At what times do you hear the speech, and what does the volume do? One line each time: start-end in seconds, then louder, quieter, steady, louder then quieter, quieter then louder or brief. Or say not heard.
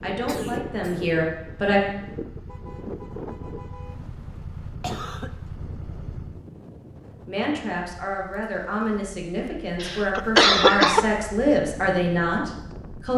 0.0-1.8 brief
7.2-13.1 louder.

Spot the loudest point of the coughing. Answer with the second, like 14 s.
11 s.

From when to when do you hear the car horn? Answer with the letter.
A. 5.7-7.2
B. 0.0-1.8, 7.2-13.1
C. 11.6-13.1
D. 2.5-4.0
D.